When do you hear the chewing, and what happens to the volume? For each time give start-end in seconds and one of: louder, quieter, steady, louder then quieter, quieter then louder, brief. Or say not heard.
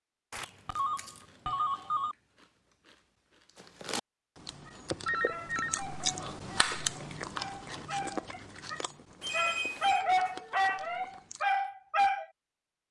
0.4-11.4 louder then quieter.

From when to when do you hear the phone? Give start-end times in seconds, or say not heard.
0.3-2.1, 5.0-5.8, 9.2-10.1.